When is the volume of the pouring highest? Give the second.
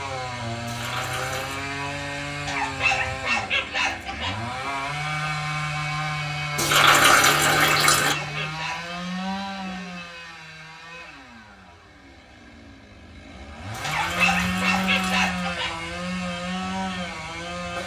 7 s.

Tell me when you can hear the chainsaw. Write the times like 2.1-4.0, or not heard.
0.0-17.8.